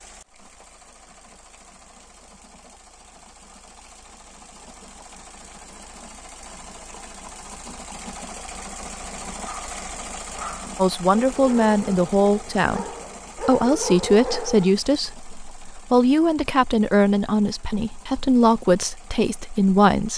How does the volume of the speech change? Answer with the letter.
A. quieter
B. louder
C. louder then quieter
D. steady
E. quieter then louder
D.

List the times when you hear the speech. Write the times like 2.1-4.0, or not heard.
10.8-20.1.